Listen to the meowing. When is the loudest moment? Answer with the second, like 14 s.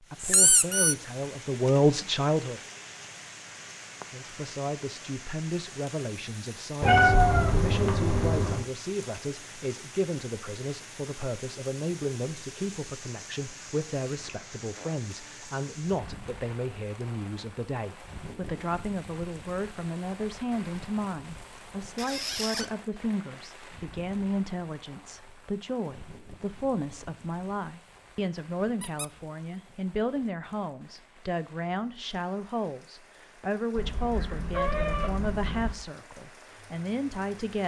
7 s.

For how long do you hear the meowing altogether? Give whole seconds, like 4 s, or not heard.
4 s.